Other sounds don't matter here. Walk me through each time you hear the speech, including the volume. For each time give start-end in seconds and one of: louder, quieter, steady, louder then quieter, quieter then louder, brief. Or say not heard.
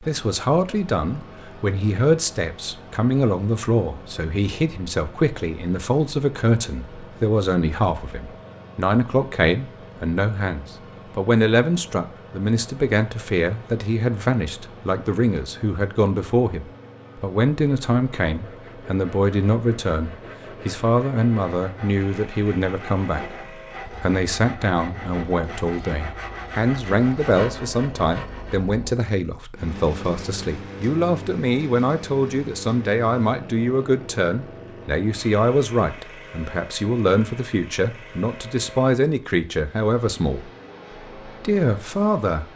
0.0-40.5 steady
41.2-42.5 brief.